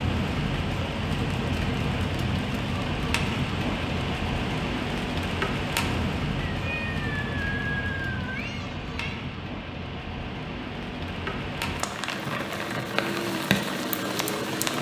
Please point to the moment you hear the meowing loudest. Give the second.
8 s.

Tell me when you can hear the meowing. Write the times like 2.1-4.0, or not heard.
6.5-9.2.